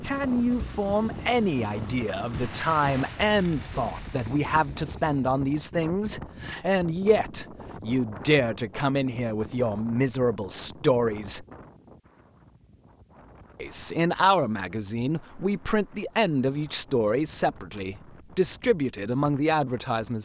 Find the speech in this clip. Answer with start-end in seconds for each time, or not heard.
0.0-11.4, 13.6-20.2.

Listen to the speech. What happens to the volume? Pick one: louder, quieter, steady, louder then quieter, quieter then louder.
steady.